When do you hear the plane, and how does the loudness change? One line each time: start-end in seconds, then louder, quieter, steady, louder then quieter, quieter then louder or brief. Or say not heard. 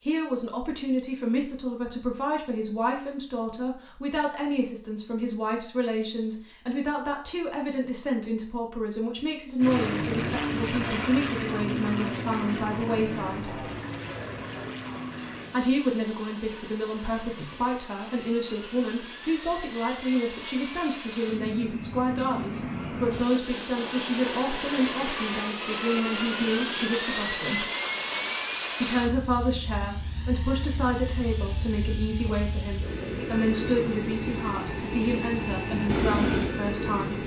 9.6-37.2 quieter then louder.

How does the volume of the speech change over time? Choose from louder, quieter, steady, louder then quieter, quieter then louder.
steady.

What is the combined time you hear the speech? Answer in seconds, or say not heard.
34 s.